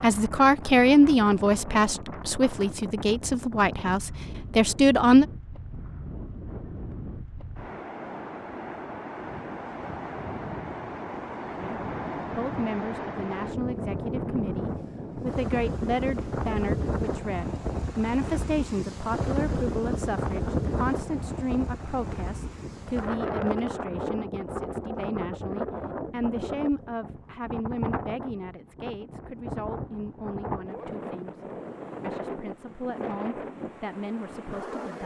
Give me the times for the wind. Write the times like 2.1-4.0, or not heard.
0.0-35.0.